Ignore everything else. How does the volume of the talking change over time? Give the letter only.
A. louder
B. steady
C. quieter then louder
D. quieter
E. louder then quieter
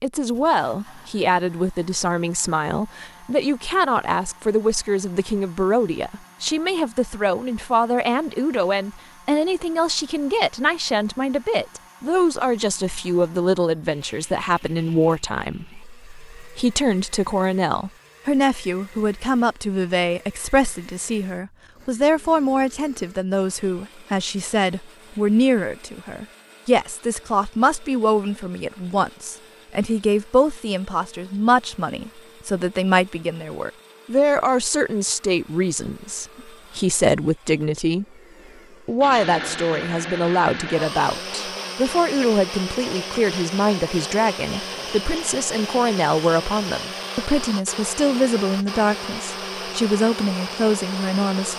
B.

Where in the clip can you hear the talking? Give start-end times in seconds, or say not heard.
0.0-38.0, 38.9-51.5.